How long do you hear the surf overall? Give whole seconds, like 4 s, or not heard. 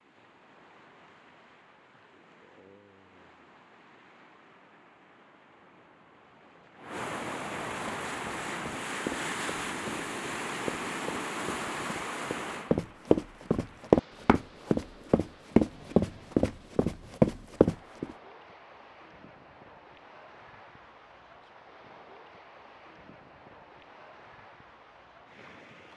26 s.